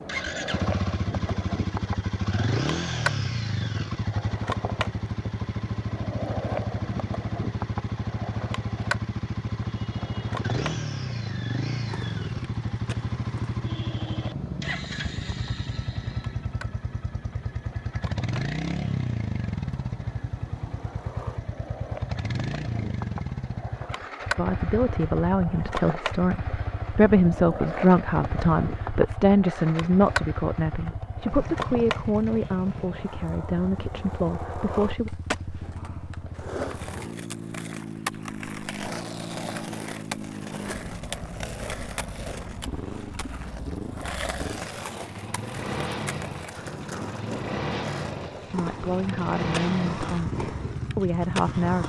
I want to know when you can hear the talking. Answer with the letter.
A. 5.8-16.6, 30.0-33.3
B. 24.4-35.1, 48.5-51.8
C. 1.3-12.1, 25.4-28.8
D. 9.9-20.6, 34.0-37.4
B.